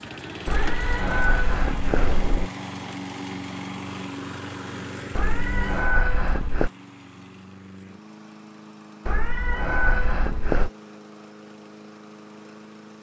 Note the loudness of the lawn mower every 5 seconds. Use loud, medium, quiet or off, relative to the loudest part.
loud, medium, medium.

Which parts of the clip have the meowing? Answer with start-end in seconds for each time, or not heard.
0.5-2.5, 5.2-6.7, 9.1-10.7.